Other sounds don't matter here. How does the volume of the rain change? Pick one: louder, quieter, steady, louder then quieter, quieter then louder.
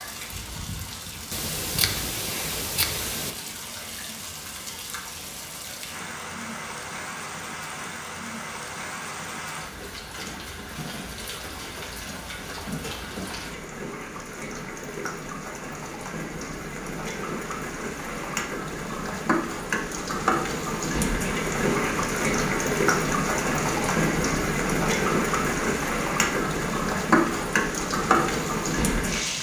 louder.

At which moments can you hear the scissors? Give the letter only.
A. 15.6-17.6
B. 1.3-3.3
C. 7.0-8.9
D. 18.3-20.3
B.